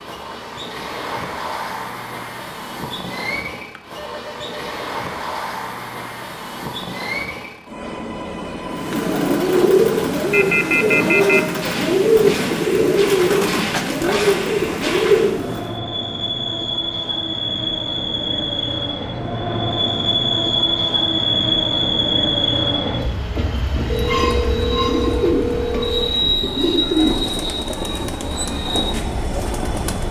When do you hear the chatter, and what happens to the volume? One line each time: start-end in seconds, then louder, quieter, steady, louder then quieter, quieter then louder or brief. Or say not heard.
not heard.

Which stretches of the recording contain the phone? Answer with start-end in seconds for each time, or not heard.
3.8-4.6, 10.3-11.4, 23.9-26.1.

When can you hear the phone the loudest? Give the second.
11 s.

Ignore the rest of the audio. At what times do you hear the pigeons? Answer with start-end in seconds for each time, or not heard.
8.7-15.8, 23.9-30.0.